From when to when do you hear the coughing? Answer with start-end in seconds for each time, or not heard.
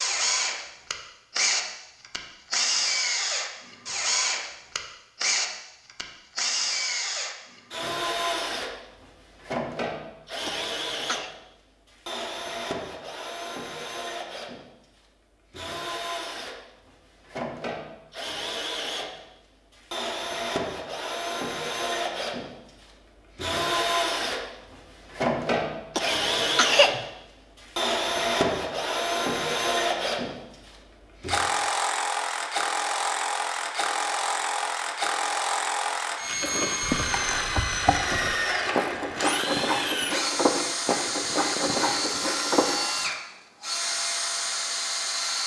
10.4-11.3, 25.9-27.1.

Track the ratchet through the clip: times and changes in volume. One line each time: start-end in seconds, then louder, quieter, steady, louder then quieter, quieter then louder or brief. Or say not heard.
36.4-43.0 steady.